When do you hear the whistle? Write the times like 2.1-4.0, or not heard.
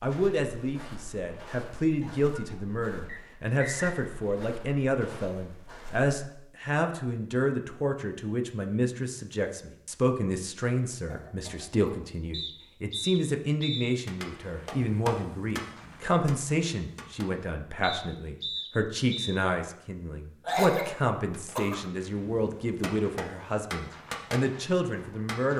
3.0-4.0, 12.3-13.9, 17.8-19.4.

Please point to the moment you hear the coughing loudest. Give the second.
21 s.